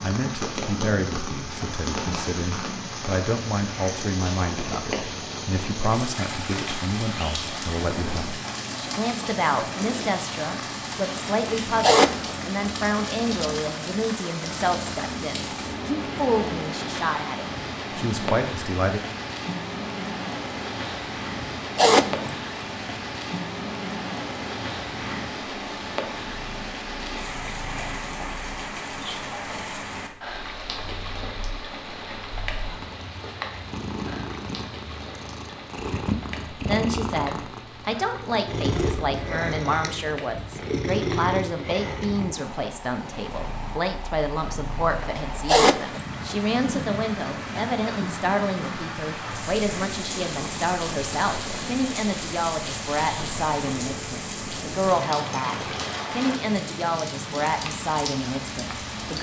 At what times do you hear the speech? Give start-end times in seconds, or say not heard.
0.0-19.0, 36.5-59.1.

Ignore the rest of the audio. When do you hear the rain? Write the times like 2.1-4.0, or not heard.
0.0-59.1.